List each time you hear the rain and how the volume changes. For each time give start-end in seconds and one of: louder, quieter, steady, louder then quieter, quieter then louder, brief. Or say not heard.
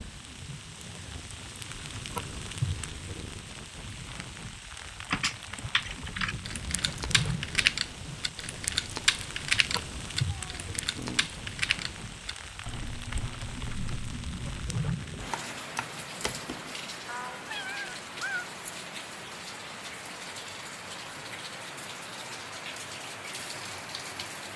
0.0-24.5 steady.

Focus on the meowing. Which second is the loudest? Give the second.
18 s.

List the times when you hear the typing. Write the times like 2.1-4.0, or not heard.
5.1-16.8.